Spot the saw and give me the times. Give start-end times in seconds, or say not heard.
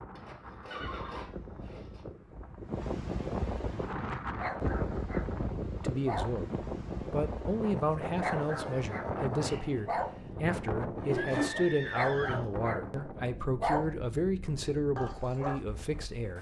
0.1-2.0, 9.4-11.7.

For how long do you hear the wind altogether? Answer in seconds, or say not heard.
16 s.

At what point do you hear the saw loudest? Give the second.
11 s.